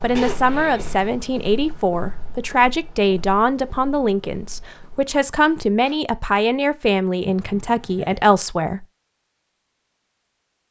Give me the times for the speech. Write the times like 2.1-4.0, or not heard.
0.0-8.8.